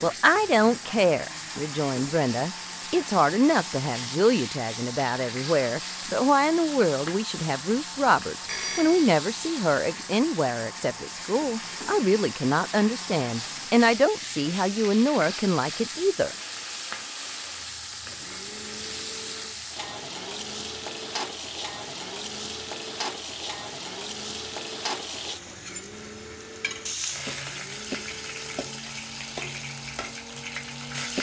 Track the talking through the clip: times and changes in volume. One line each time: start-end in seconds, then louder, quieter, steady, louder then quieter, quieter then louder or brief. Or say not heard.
0.0-16.4 steady.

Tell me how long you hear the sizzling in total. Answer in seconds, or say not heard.
31 s.